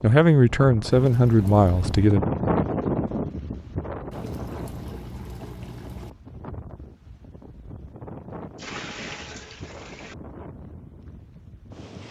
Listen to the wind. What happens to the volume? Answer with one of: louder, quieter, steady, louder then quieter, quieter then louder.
quieter.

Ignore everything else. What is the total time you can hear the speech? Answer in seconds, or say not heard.
2 s.